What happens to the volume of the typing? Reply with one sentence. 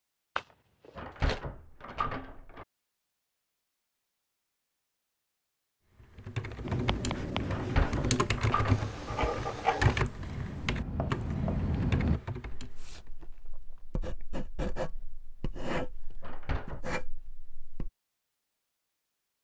The volume of the typing goes up, then down.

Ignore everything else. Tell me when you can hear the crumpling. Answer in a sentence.
The crumpling can be heard from 0.3 to 1.4 s.